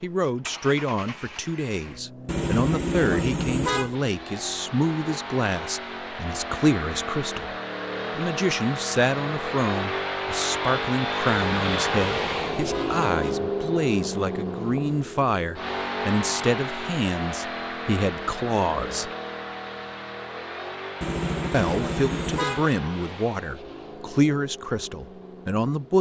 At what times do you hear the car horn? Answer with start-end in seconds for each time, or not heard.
2.2-4.0, 11.3-13.3, 21.0-22.7.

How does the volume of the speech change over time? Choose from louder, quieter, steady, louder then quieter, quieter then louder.
steady.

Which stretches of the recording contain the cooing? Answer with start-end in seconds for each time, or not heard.
not heard.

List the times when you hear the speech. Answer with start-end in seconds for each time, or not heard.
0.0-7.5, 8.2-19.1, 21.5-25.9.